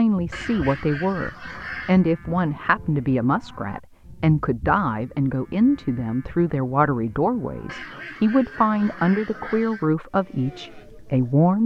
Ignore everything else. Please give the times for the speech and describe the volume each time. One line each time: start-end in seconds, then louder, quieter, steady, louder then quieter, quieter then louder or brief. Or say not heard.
0.0-11.6 steady.